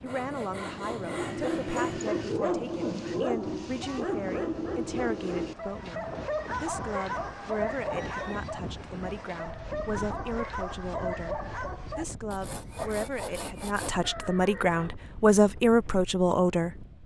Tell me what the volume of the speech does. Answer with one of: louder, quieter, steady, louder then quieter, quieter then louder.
louder.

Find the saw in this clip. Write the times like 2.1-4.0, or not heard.
0.1-2.0, 12.3-14.1.